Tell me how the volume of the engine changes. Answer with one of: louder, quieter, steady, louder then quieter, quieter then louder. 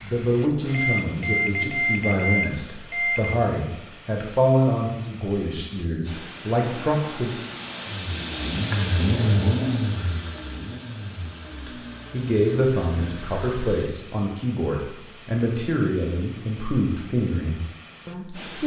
louder then quieter.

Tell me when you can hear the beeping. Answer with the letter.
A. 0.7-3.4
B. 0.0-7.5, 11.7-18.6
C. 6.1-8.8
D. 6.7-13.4
A.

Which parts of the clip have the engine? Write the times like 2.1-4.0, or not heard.
6.7-13.4.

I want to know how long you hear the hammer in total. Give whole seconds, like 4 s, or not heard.
not heard.